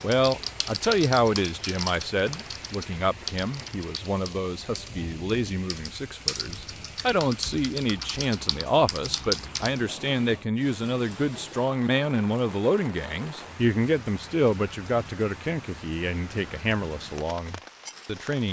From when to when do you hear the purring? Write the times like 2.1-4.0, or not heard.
not heard.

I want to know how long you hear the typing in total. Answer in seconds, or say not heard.
10 s.